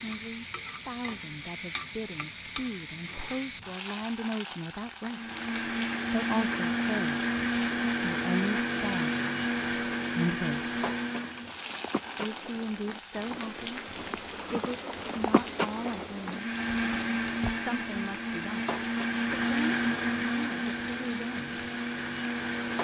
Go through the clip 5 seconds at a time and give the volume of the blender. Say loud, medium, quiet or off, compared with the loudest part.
off, loud, loud, loud, loud.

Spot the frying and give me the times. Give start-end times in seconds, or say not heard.
0.0-22.7.